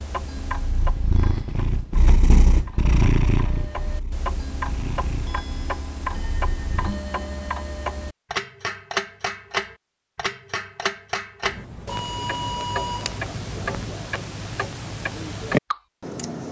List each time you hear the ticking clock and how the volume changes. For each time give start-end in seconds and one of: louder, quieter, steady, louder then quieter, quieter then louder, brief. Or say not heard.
0.0-16.4 louder.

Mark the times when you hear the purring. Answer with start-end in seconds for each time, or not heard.
0.1-7.0.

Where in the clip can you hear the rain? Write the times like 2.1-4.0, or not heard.
not heard.